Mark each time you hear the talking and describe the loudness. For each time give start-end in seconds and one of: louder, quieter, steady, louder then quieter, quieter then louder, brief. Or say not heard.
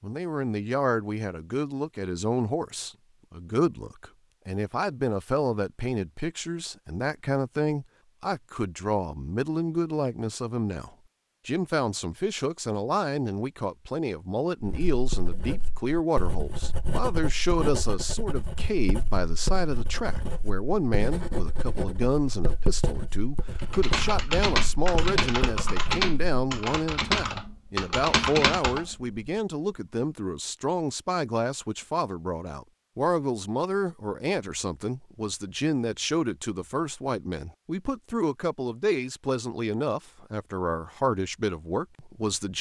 0.0-42.5 steady.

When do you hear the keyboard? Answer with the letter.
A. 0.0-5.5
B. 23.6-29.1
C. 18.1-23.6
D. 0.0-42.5
B.